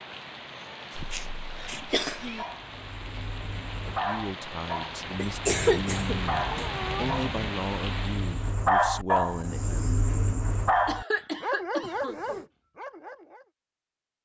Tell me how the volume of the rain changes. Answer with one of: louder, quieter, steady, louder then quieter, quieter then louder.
louder.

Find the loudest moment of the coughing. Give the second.
6 s.